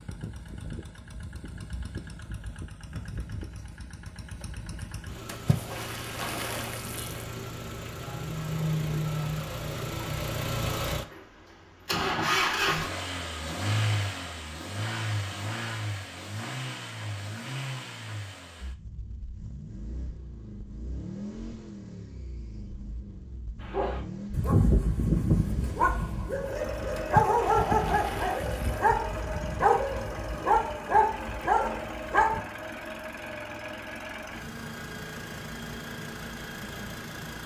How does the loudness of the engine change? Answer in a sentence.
The volume of the engine goes up, then down.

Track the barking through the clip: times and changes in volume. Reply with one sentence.
The barking can be heard from 23.7 to 32.4 s, at a steady volume.